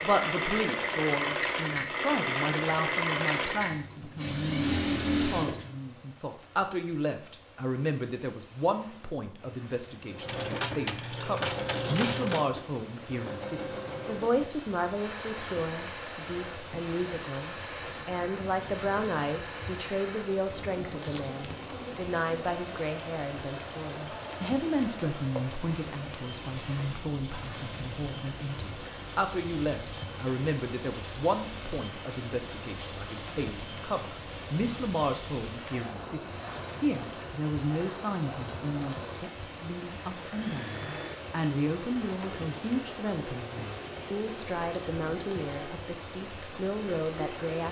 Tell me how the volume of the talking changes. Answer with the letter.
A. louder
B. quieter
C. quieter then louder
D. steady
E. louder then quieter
D.